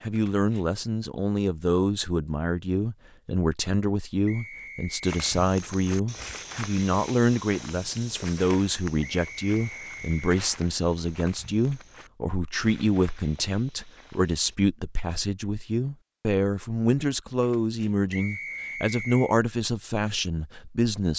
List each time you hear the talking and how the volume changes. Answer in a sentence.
You can hear the talking from 0.0 to 21.1 s, at a steady volume.